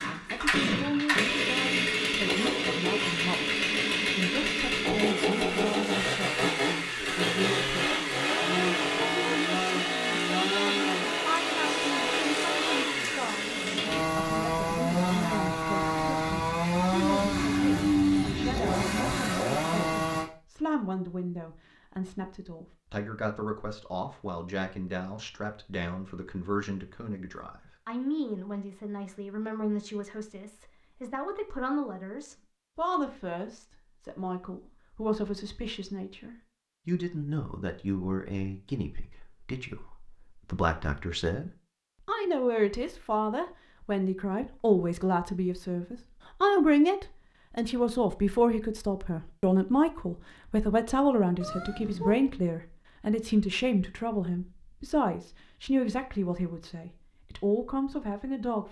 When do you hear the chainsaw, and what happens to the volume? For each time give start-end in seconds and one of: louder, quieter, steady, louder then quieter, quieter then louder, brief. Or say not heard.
0.0-20.3 steady.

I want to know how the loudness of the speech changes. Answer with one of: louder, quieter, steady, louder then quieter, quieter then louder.
louder.